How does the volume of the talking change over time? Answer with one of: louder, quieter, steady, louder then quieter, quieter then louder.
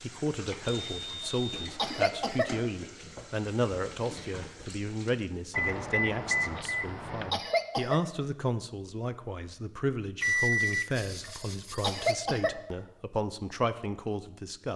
steady.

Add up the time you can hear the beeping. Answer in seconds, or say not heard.
5 s.